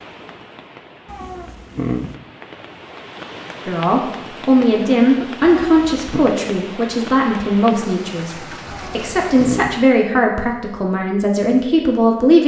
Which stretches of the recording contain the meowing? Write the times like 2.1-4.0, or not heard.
1.1-2.1, 5.5-6.2, 8.7-9.8.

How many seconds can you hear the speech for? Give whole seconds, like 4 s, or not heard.
9 s.